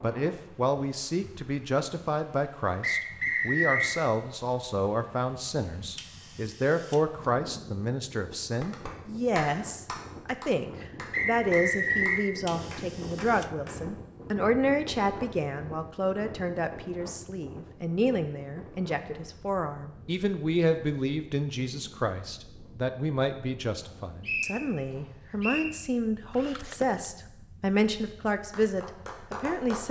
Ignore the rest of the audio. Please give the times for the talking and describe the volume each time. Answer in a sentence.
You can hear the talking from 0.0 to 29.8 s, at a steady volume.